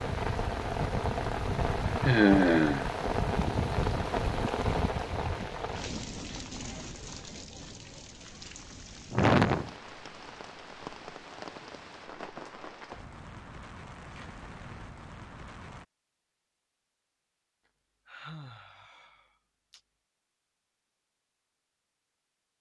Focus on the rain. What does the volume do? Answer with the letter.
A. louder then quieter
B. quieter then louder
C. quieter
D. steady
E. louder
C.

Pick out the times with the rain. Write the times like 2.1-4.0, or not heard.
0.0-15.8.